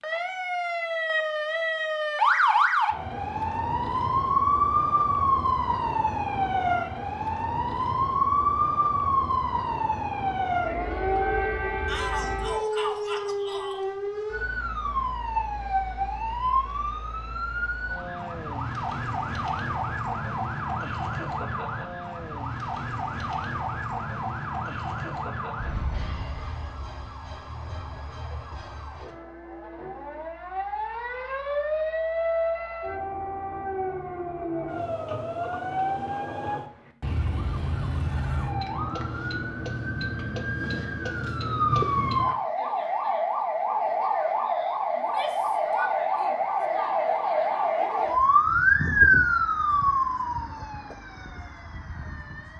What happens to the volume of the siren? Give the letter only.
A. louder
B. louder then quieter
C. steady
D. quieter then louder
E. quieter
D.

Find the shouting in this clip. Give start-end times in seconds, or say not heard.
11.8-13.8, 45.0-46.5.